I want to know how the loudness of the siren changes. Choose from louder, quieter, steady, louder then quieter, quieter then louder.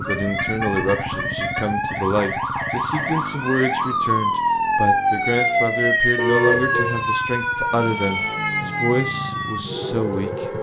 louder then quieter.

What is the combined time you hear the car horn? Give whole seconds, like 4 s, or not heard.
2 s.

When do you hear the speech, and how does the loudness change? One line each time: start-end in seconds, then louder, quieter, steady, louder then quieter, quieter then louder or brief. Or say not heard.
0.0-10.4 steady.